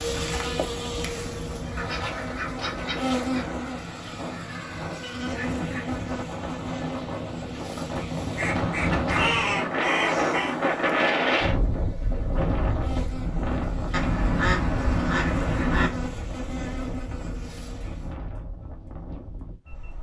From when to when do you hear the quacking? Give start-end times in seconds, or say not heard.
1.8-3.5, 8.3-10.6, 13.9-15.9.